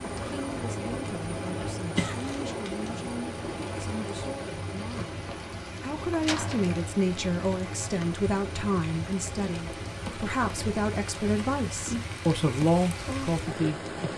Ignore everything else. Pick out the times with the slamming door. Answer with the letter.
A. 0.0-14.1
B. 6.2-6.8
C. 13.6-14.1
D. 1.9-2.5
B.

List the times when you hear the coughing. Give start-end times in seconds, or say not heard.
1.9-2.5.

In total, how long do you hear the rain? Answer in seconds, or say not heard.
14 s.